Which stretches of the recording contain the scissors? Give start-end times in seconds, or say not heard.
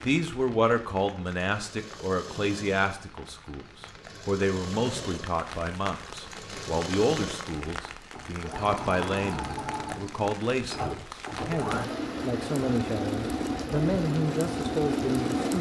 not heard.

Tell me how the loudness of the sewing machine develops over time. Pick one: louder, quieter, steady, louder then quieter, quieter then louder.
louder.